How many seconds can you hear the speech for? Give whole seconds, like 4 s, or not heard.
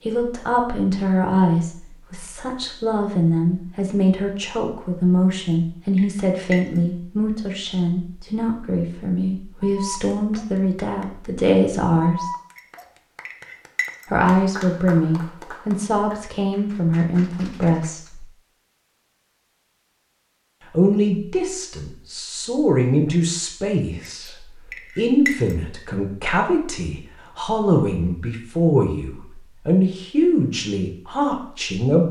28 s.